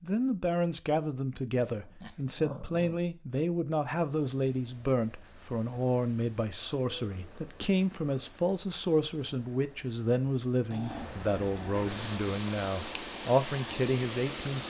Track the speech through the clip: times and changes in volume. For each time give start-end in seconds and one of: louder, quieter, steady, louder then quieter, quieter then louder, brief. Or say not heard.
0.0-14.6 steady.